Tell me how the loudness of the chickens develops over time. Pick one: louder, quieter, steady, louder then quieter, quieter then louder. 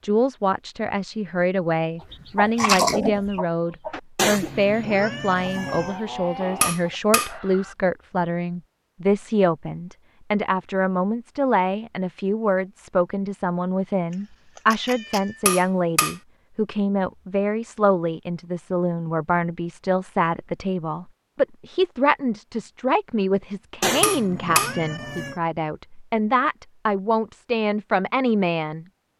quieter then louder.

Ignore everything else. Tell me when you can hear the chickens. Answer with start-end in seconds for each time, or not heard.
2.0-7.8.